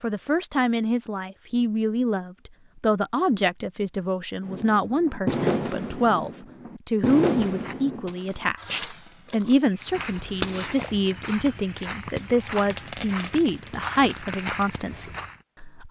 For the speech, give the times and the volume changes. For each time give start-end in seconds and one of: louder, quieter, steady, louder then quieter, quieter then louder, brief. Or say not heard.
0.0-15.8 steady.